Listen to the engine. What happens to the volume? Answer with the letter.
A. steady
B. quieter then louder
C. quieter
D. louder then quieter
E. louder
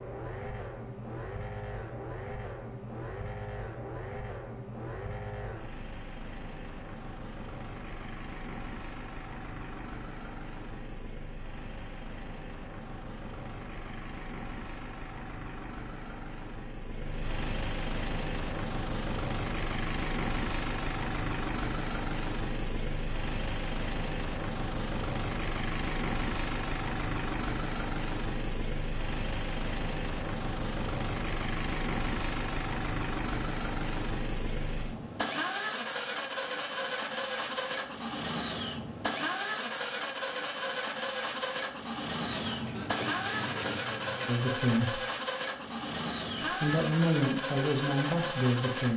E.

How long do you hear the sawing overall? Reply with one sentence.
The sawing can be heard for 2 seconds in total.